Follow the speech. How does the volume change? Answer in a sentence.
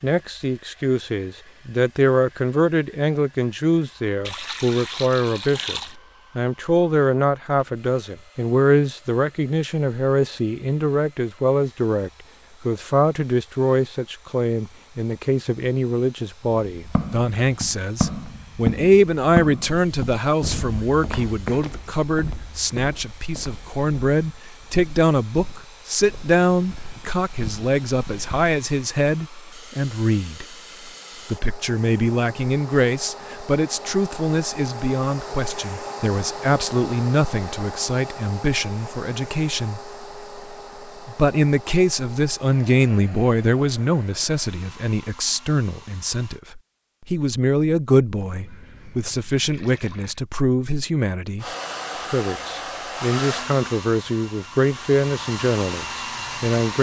The loudness of the speech stays about the same.